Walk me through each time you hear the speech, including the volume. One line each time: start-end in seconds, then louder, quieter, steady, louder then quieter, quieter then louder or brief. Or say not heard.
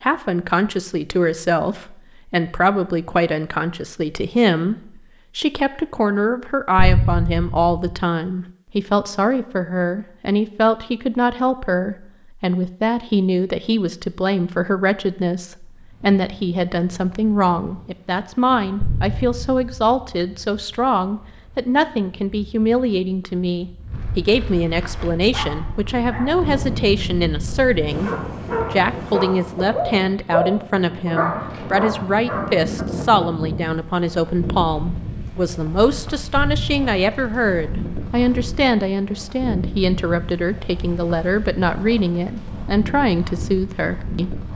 0.0-44.5 steady.